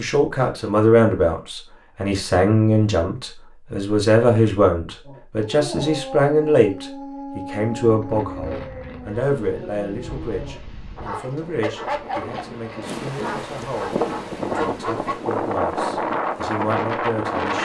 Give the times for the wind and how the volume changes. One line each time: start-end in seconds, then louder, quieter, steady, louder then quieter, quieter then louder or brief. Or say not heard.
7.8-17.6 louder.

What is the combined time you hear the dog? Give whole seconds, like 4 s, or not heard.
10 s.